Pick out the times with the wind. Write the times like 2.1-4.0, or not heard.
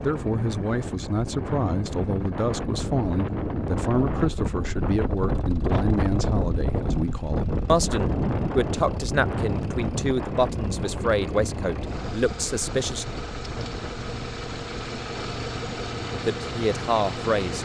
0.0-17.4.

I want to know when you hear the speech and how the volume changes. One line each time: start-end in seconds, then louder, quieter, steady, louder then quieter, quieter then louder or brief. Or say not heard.
0.0-13.1 steady
16.2-17.6 brief.